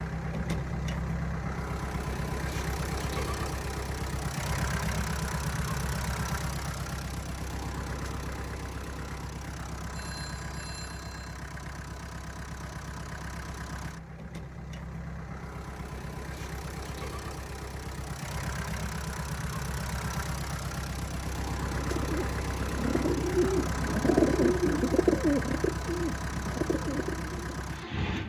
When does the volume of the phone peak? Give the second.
10 s.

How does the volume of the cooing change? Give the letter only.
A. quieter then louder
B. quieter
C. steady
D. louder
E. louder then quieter
E.